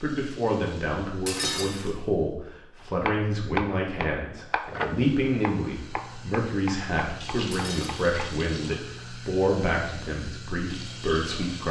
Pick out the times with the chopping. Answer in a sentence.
The chopping can be heard from 3.0 to 8.4 s.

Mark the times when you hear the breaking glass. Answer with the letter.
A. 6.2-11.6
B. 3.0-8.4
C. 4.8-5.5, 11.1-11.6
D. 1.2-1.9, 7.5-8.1
D.